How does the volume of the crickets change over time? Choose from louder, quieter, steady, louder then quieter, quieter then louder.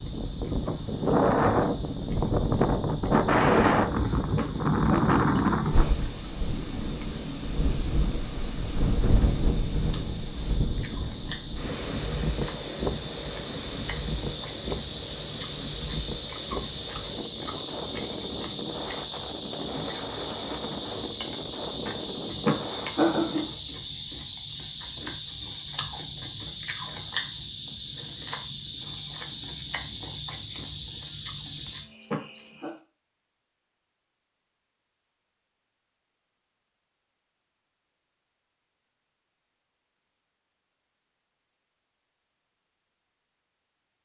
louder.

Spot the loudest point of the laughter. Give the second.
23 s.